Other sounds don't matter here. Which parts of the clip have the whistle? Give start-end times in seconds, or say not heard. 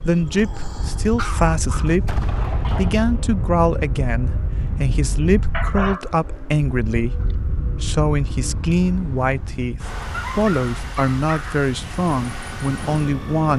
not heard.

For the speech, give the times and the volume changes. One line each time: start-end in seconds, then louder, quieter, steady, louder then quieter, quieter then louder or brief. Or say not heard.
0.1-13.5 steady.